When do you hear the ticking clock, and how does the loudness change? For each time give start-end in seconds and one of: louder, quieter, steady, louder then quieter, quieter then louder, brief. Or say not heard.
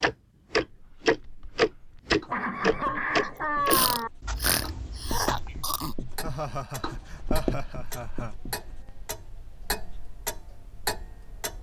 0.0-11.5 quieter then louder.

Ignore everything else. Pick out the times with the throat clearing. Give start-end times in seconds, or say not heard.
3.6-6.0.